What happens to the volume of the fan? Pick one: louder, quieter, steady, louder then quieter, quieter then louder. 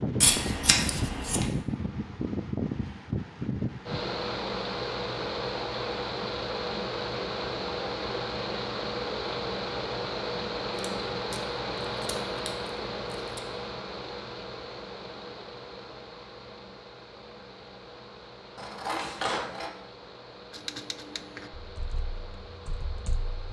quieter.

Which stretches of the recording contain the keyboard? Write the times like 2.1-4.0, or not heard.
20.5-23.4.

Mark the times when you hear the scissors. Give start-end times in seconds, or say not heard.
0.2-1.4, 10.8-13.4, 18.6-19.7.